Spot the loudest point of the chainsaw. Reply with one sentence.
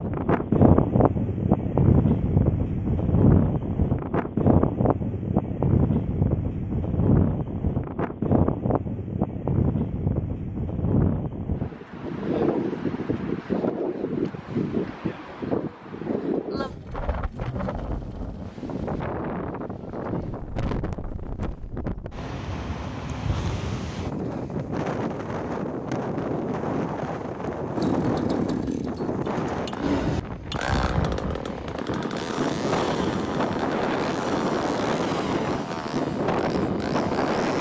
The loudest moment of the chainsaw is at 28 seconds.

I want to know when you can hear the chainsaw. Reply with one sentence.
The chainsaw can be heard from 27.8 to 37.5 s.